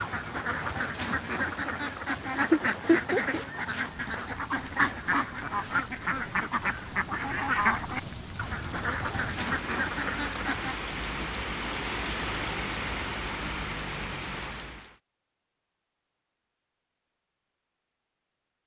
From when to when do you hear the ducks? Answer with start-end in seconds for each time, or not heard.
0.0-10.8.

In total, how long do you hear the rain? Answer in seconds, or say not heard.
15 s.